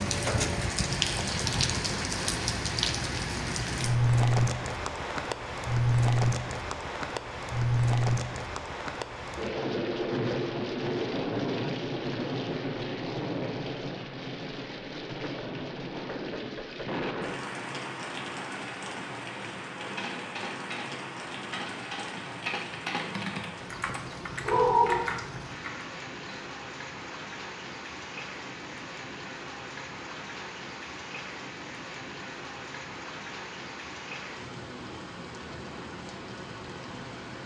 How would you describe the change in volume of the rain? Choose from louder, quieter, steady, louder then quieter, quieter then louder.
quieter.